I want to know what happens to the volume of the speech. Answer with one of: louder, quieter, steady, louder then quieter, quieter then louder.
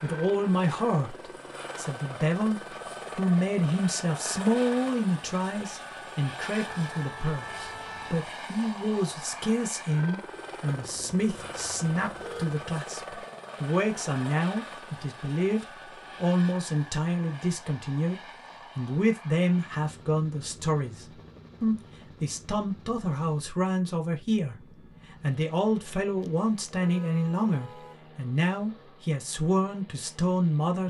steady.